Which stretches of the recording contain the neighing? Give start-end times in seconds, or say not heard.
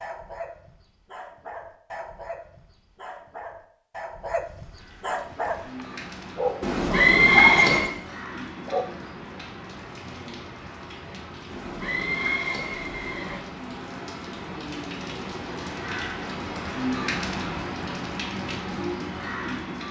6.6-7.9, 11.5-13.4.